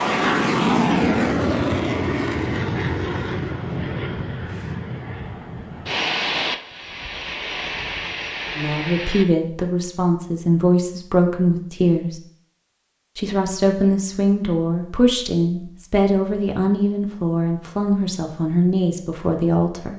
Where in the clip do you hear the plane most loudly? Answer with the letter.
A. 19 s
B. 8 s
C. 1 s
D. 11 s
C.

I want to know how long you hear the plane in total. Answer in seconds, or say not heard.
9 s.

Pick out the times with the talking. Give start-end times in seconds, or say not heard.
8.6-12.2, 13.2-19.9.